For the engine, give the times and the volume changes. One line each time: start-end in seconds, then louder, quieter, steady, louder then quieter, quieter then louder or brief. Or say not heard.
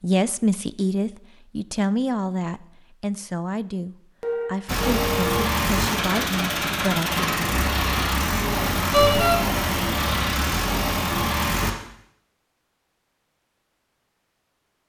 4.7-11.8 steady.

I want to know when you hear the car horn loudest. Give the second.
9 s.